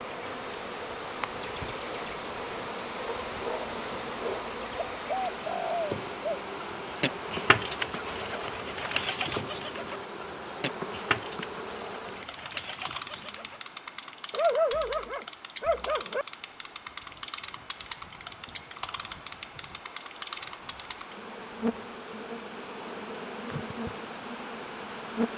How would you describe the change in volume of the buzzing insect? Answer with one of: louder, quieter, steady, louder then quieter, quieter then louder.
steady.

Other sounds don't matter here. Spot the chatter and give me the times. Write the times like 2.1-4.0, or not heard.
not heard.